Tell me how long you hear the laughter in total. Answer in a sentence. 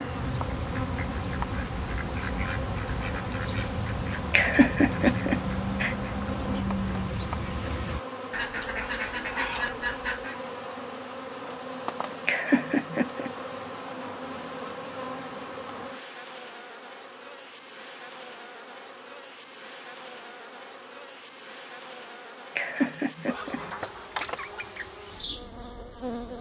The laughter can be heard for 4 seconds in total.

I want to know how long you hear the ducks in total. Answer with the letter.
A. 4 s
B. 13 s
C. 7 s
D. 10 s
D.